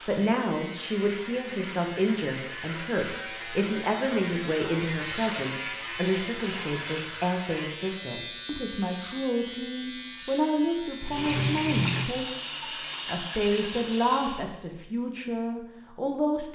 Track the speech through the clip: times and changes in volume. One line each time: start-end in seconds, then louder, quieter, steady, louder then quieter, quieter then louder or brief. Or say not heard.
0.1-16.5 steady.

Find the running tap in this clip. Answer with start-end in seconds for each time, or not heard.
10.9-14.5.